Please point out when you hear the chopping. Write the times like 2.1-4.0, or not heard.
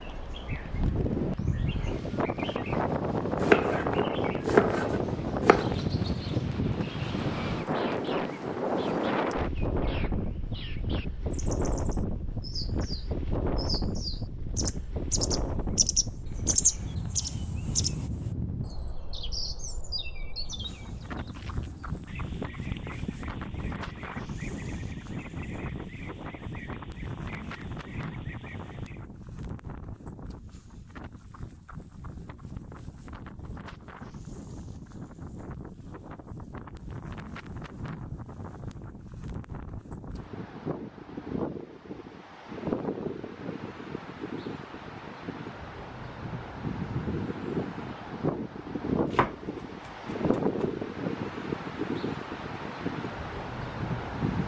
3.4-5.8, 48.9-50.7.